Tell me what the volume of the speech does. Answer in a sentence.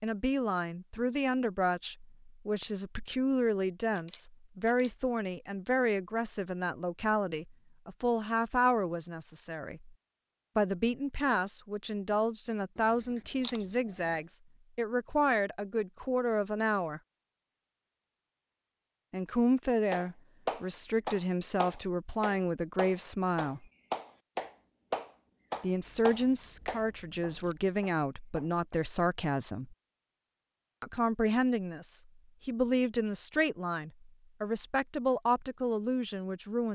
The volume of the speech stays about the same.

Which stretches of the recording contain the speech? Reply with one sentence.
The speech can be heard from 0.0 to 9.9 s, from 10.6 to 17.0 s, from 19.1 to 23.6 s, from 25.6 to 29.8 s and from 30.8 to 36.7 s.